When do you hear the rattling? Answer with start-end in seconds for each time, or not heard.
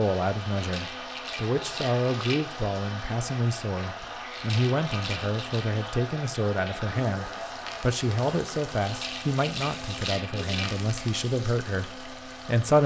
0.6-2.5, 4.3-5.7, 8.8-10.8.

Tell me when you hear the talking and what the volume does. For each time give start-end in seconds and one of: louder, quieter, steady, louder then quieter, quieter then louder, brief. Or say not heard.
0.0-12.8 steady.